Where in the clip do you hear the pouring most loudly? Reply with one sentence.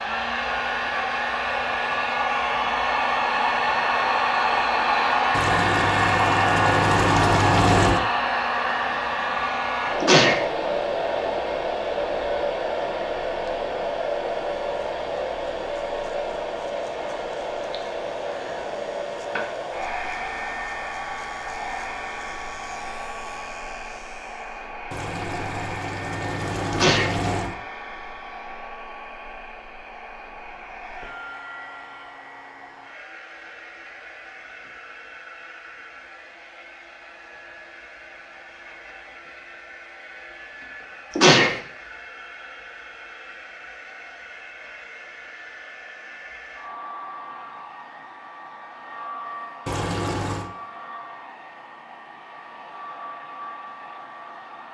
The volume of the pouring peaks at 8 seconds.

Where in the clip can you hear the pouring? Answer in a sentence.
The pouring can be heard from 5.3 to 8.0 s, from 24.9 to 27.6 s and from 49.6 to 50.5 s.